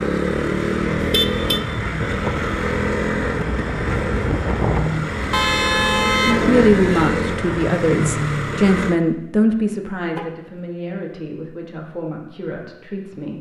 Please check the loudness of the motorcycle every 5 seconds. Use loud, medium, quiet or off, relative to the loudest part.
loud, loud, off.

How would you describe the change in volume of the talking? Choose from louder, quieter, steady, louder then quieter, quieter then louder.
quieter.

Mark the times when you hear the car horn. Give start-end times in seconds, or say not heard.
1.0-1.6, 5.3-7.2, 10.2-10.6.